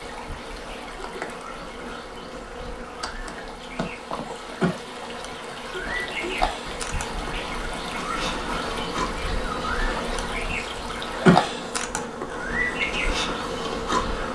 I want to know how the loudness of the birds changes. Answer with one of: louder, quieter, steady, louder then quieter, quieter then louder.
louder.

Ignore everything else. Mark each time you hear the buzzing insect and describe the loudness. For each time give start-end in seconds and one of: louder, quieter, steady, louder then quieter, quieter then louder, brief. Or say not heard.
0.0-14.3 louder.